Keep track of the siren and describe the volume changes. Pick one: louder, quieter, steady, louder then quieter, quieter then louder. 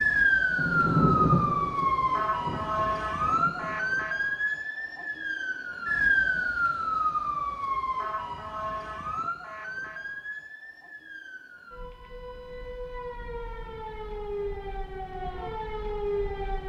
quieter then louder.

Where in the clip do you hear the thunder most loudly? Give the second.
1 s.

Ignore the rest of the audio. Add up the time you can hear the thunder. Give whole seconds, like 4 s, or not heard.
3 s.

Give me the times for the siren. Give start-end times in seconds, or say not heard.
0.0-16.6.